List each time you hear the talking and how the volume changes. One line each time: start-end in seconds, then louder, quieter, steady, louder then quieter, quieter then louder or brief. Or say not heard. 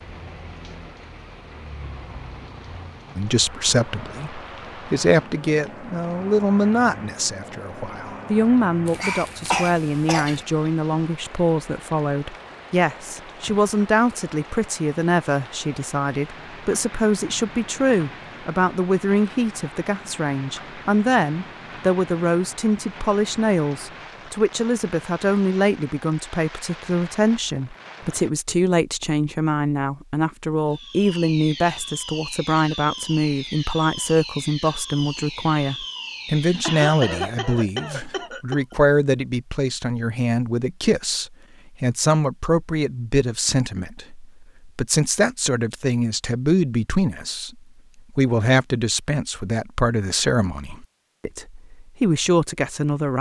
3.1-53.1 steady.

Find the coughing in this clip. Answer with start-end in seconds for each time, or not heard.
8.8-10.4, 36.6-38.6.